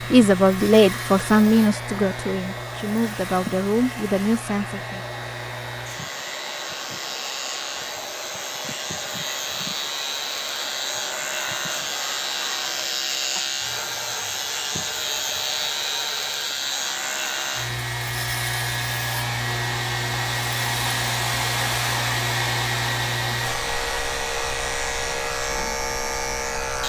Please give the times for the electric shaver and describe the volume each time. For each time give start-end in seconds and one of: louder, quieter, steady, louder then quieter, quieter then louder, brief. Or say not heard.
0.0-26.8 louder.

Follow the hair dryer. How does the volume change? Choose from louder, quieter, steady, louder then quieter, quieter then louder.
louder.